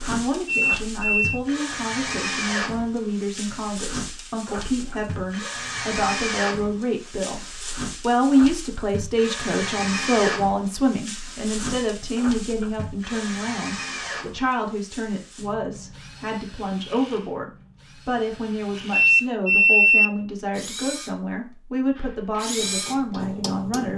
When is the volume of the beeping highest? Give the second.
20 s.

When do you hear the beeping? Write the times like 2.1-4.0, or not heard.
0.5-1.4, 18.9-20.1.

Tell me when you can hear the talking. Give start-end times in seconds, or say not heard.
0.1-23.9.